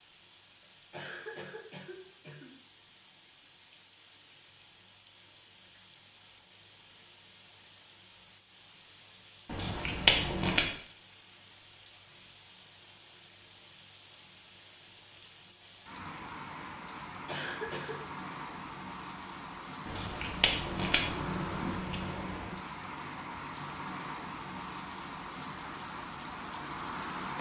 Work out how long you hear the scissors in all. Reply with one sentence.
The scissors can be heard for 4 seconds in total.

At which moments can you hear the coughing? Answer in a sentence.
The coughing can be heard from 0.9 to 2.5 s and from 17.2 to 18.1 s.